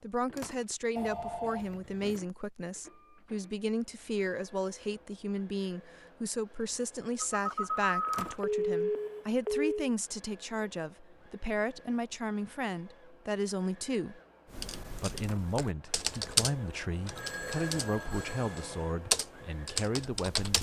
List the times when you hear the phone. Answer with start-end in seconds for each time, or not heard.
0.9-2.2, 7.2-9.9, 17.0-18.6.